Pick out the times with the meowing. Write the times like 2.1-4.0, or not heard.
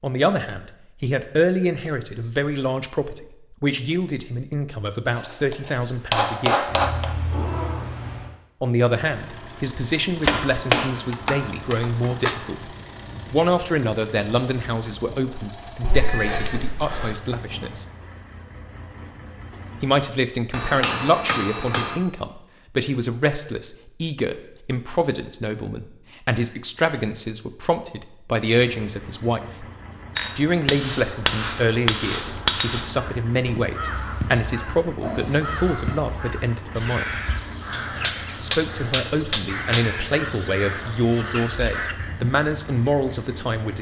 6.7-8.3, 15.8-17.2, 35.0-36.0.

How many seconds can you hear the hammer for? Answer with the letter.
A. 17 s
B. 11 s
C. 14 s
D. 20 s
B.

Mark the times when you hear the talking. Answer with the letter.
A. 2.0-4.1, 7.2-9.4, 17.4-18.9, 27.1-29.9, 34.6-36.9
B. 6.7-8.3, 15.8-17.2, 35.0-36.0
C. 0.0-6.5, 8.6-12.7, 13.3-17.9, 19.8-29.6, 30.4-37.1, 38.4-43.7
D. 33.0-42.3
C.